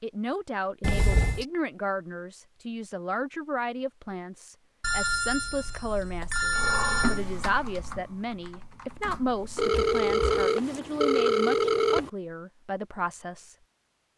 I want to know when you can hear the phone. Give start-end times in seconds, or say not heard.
0.8-1.4, 4.8-7.2, 9.6-12.1.